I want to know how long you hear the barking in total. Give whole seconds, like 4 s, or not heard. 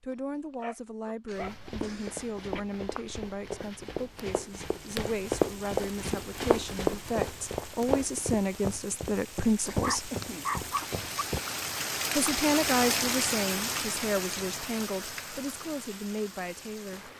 3 s.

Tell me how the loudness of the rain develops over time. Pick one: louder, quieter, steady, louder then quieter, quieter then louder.
louder then quieter.